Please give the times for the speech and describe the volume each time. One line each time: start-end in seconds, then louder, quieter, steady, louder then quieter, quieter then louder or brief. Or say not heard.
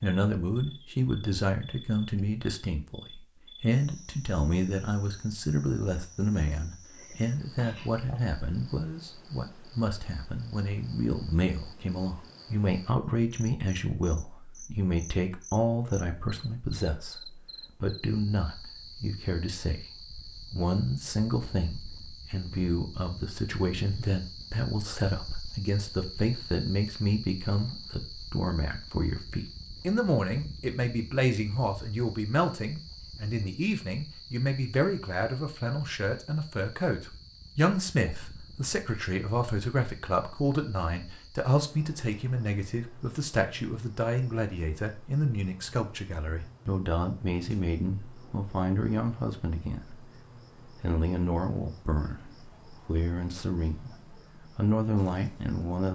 0.0-50.0 steady
50.8-55.9 quieter then louder.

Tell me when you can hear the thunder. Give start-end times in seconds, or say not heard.
not heard.